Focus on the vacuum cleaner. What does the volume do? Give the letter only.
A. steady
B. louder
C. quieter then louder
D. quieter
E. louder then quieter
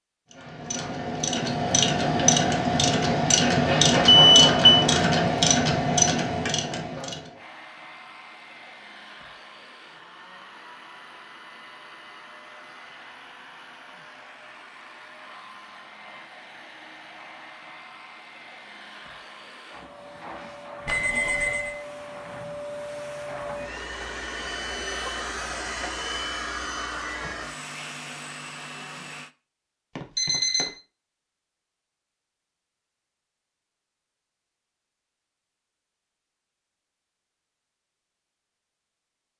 B.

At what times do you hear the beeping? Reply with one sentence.
The beeping can be heard from 4.0 to 4.8 s, from 20.9 to 21.8 s and from 29.9 to 30.7 s.